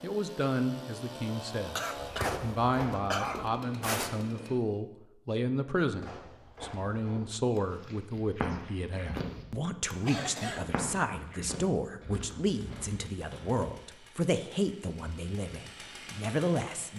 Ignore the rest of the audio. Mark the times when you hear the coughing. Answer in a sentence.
You can hear the coughing from 1.8 to 3.5 s and from 10.1 to 10.8 s.